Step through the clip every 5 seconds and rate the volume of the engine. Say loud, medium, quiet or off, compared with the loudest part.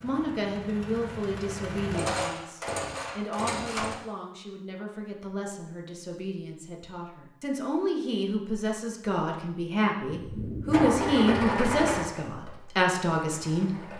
loud, off, loud.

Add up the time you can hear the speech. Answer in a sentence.
The speech can be heard for 14 seconds in total.